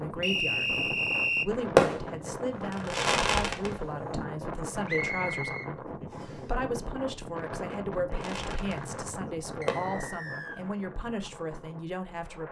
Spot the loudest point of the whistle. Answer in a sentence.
The loudest moment of the whistle is at 1 second.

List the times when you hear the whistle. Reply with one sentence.
The whistle can be heard from 0.2 to 1.4 s, from 4.8 to 6.4 s and from 9.6 to 10.7 s.